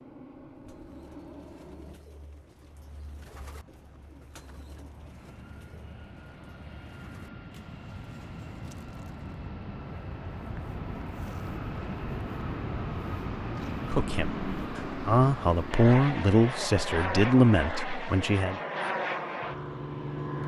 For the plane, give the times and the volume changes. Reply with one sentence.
The plane can be heard from 0.0 to 20.4 s, getting louder.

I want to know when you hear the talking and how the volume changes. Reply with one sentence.
The talking can be heard from 13.9 to 18.6 s, getting louder.